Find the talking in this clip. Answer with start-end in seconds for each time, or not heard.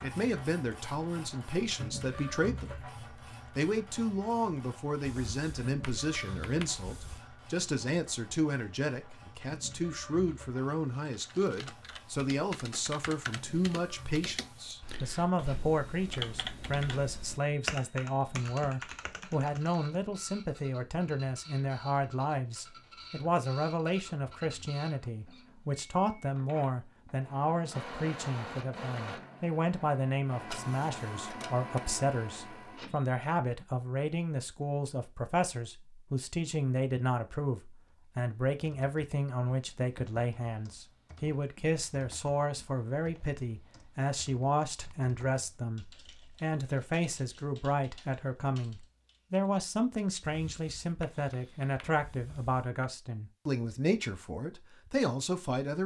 0.0-2.9, 3.5-55.8.